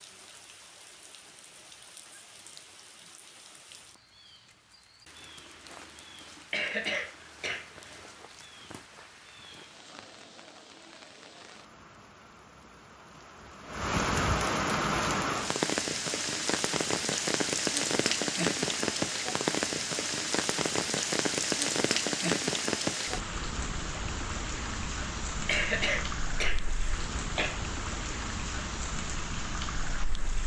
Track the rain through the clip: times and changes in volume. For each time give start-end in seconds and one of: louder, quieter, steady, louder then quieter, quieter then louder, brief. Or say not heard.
0.0-30.4 louder then quieter.